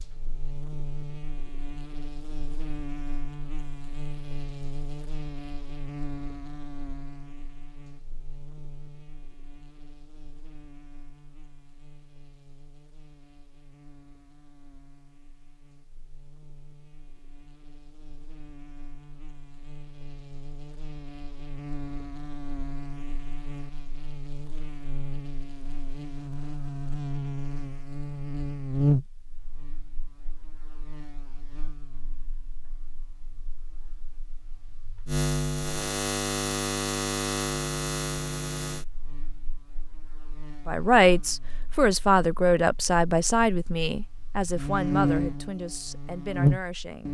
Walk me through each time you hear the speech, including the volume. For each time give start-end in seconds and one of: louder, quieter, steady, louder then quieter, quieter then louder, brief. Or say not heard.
40.6-47.0 quieter.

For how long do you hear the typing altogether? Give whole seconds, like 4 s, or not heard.
not heard.